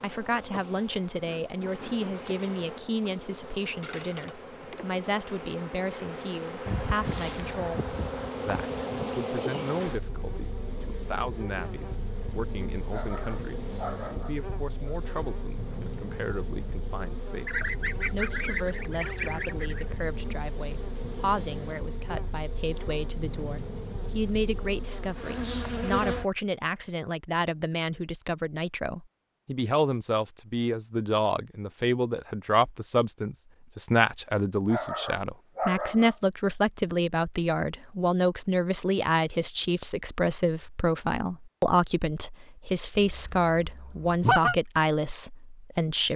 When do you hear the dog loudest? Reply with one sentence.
The loudest moment of the dog is at 36 seconds.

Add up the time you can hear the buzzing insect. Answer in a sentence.
You can hear the buzzing insect for 26 seconds altogether.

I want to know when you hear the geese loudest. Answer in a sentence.
The volume of the geese peaks at 44 seconds.